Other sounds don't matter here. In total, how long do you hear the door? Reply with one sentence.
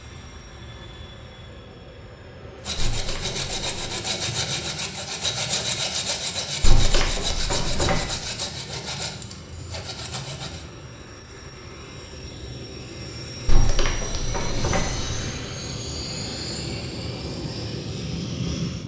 You can hear the door for 4 seconds altogether.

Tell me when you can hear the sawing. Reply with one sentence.
The sawing can be heard from 2.6 to 10.7 s.